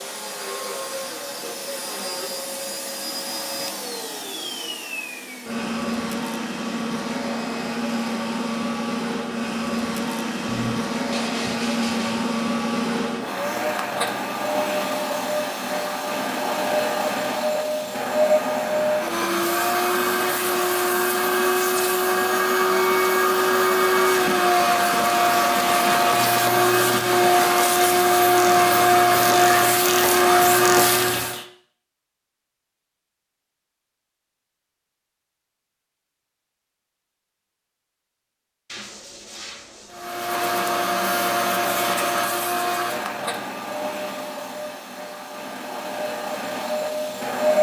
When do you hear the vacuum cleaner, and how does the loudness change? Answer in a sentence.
You can hear the vacuum cleaner from 0.0 to 31.4 s, getting louder; and from 39.9 to 47.5 s, getting quieter then louder.